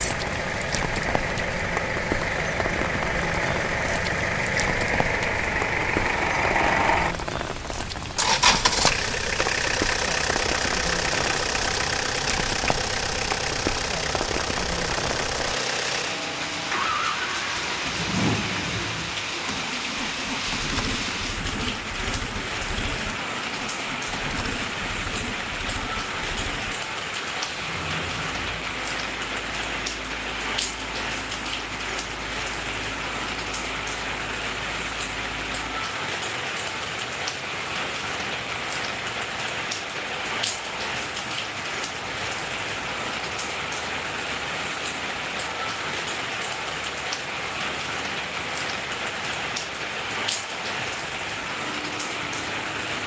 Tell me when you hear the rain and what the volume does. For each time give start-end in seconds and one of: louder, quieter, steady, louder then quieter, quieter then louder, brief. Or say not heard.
0.0-53.0 steady.